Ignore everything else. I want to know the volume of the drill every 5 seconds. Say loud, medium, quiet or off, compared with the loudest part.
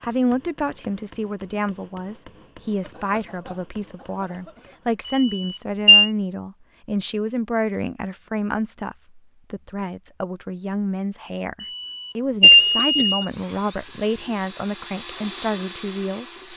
off, off, medium, loud.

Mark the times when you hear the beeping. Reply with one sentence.
The beeping can be heard from 5.0 to 6.1 s and from 11.6 to 13.2 s.